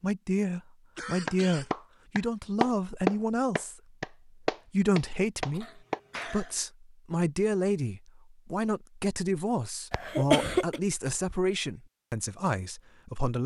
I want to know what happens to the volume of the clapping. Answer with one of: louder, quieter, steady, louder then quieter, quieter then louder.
louder then quieter.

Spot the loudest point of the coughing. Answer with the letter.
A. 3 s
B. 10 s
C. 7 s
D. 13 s
B.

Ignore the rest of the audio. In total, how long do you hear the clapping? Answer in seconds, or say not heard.
5 s.